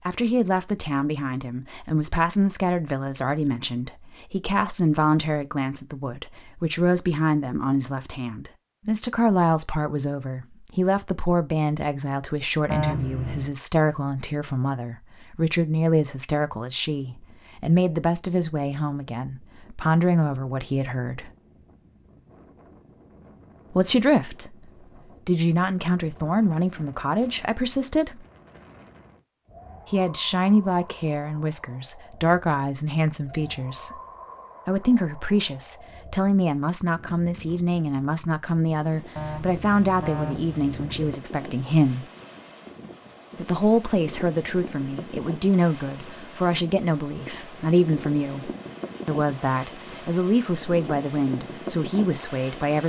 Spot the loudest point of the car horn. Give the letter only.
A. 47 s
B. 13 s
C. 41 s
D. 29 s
B.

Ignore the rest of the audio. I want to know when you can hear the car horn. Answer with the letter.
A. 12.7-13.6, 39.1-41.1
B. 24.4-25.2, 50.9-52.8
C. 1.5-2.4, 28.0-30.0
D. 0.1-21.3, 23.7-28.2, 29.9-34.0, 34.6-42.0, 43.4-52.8
A.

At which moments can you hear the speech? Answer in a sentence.
The speech can be heard from 0.1 to 21.3 s, from 23.7 to 28.2 s, from 29.9 to 34.0 s, from 34.6 to 42.0 s and from 43.4 to 52.8 s.